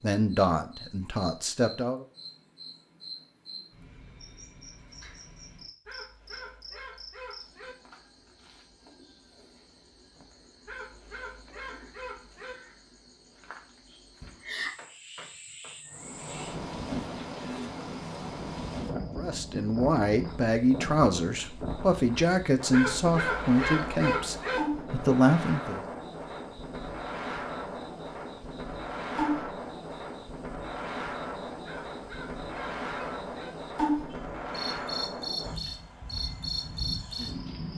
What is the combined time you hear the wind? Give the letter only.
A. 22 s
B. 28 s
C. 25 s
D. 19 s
A.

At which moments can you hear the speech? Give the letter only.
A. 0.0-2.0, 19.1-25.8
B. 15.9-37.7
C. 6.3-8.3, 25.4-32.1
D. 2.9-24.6
A.